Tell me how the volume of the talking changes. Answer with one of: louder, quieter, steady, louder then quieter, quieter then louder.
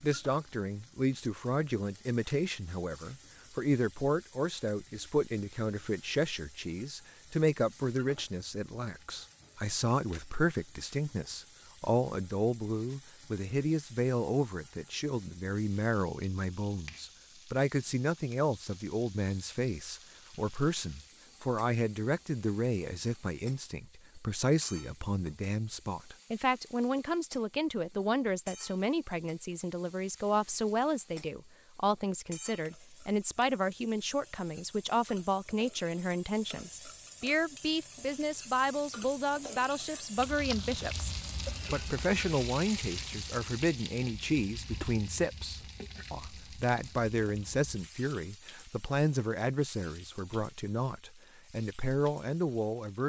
steady.